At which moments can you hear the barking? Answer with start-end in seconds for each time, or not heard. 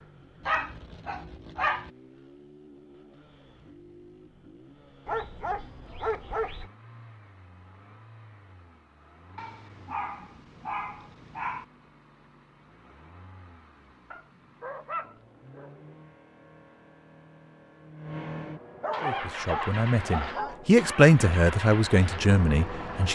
0.5-1.9, 5.0-6.7, 9.3-11.7, 14.1-15.9, 18.8-20.6.